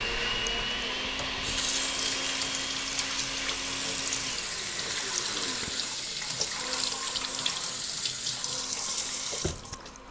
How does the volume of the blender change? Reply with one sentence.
The volume of the blender goes down.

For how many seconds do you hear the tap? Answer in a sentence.
The tap can be heard for 10 seconds in total.